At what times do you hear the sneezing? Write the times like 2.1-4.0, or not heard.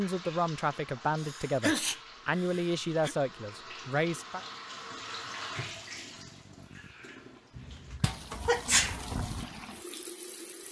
1.2-3.1, 7.5-8.9.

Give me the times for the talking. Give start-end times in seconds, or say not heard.
0.0-4.4.